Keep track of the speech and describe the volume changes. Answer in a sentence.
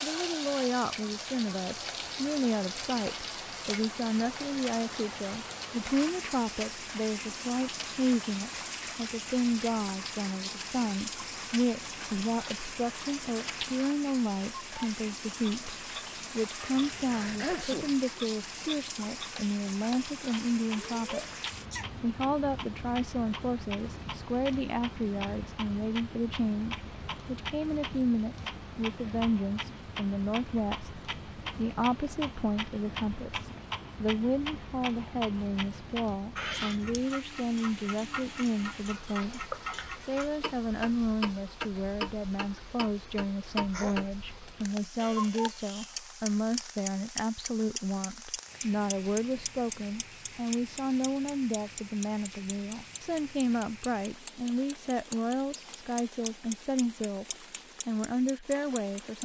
The loudness of the speech stays about the same.